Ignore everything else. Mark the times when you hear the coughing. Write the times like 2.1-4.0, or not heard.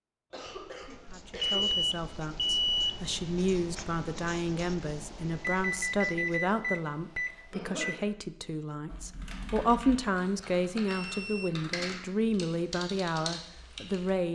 0.3-1.7, 7.5-8.1, 11.4-12.2.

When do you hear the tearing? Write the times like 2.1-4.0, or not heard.
not heard.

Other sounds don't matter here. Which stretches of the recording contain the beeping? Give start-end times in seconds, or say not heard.
1.4-3.0, 5.3-8.0, 10.8-11.7.